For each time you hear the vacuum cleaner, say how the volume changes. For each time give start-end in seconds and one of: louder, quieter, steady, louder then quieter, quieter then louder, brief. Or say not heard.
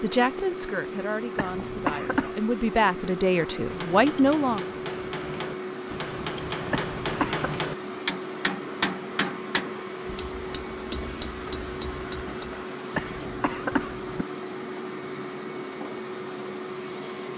0.0-17.3 steady.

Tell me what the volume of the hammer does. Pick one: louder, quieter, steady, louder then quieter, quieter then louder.
louder then quieter.